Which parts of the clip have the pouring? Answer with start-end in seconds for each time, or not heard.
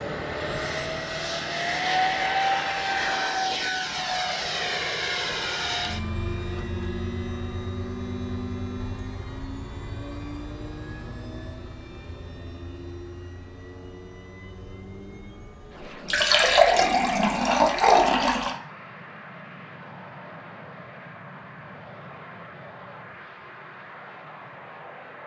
16.1-18.6.